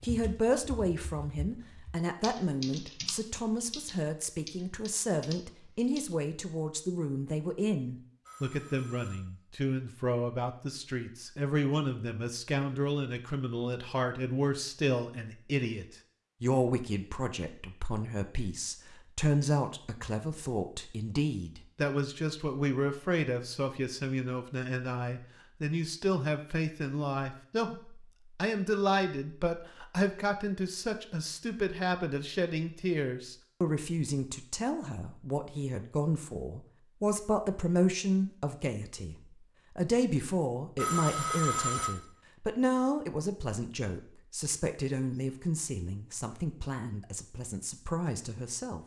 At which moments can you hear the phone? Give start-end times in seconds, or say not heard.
8.2-9.2, 40.8-41.9.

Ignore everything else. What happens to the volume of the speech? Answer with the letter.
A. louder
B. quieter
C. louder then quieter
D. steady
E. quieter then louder
D.